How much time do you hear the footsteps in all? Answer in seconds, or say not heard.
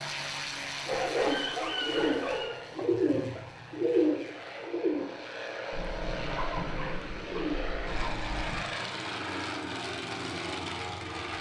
not heard.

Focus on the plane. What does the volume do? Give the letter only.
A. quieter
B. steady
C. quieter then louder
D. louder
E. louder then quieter
C.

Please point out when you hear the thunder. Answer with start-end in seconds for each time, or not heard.
5.7-8.7.